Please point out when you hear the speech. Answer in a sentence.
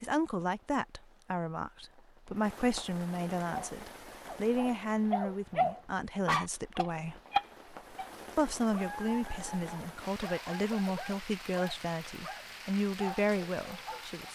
The speech can be heard from 0.0 to 7.2 s and from 8.3 to 14.2 s.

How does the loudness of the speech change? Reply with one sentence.
The volume of the speech stays about the same.